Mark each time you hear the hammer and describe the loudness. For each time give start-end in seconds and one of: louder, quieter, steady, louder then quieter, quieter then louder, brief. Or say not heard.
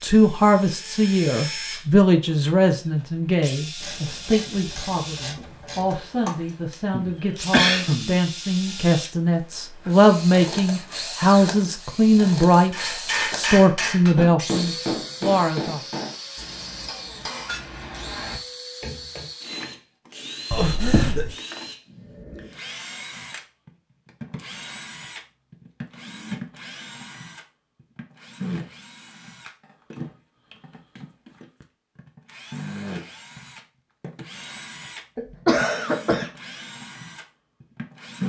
12.7-19.3 quieter.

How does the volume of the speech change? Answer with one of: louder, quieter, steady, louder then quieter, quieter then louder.
quieter then louder.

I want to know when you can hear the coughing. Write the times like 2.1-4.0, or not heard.
6.9-8.2, 20.5-21.4, 35.1-36.3.